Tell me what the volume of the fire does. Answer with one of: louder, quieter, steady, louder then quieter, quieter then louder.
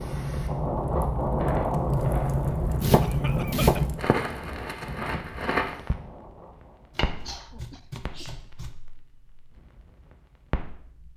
quieter.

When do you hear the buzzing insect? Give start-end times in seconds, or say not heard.
not heard.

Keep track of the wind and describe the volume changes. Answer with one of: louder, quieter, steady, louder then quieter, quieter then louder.
quieter.